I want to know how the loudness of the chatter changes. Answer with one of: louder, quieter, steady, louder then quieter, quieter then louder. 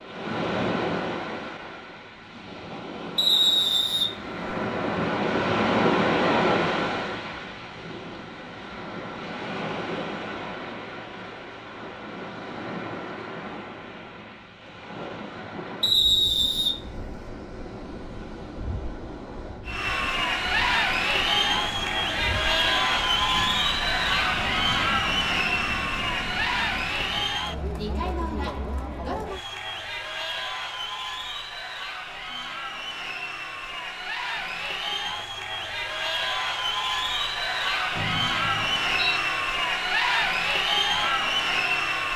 quieter then louder.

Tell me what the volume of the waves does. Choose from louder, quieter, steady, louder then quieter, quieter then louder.
quieter.